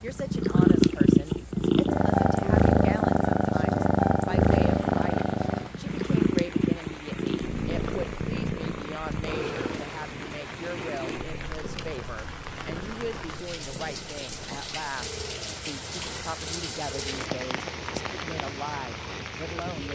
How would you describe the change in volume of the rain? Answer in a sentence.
The loudness of the rain goes up.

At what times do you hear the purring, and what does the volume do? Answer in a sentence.
The purring can be heard from 0.0 to 19.8 s, getting quieter.